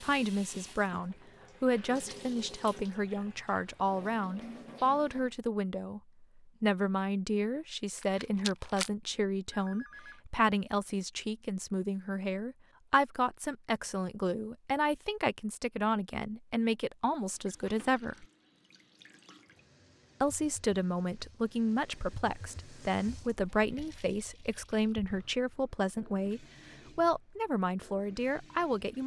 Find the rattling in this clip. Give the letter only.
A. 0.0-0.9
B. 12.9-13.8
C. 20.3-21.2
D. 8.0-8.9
D.